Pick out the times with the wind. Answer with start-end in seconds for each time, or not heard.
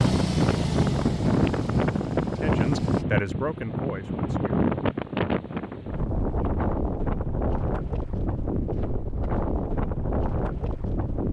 0.0-11.2.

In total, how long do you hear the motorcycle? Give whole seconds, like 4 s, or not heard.
3 s.